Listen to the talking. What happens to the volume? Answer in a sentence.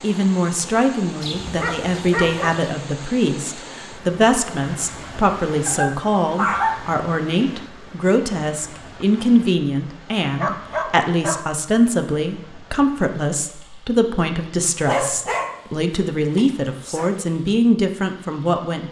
The volume of the talking stays about the same.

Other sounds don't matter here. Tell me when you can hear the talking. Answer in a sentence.
You can hear the talking from 0.0 to 18.8 s.